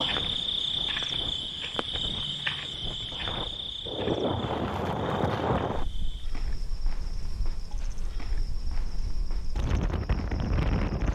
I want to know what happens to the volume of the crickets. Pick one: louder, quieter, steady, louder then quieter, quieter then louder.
quieter.